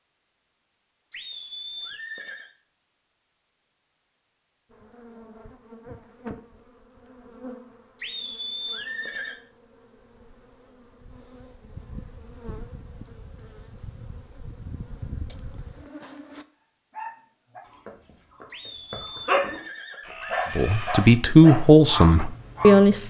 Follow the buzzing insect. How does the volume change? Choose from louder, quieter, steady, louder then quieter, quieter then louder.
quieter then louder.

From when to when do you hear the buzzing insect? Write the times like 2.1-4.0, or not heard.
4.7-16.4.